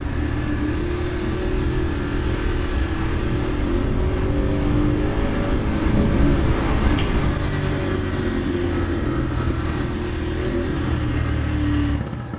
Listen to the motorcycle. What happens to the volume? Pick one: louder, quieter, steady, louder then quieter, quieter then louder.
steady.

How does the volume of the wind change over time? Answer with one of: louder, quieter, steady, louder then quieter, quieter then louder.
louder.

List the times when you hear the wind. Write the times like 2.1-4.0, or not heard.
0.0-7.5.